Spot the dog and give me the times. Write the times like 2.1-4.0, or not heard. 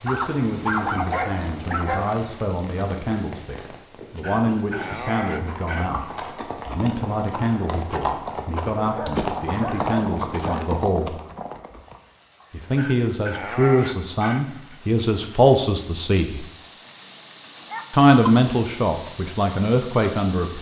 0.1-2.1, 4.2-6.0, 8.8-10.8, 12.7-14.8, 17.7-18.4.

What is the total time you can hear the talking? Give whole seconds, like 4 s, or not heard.
18 s.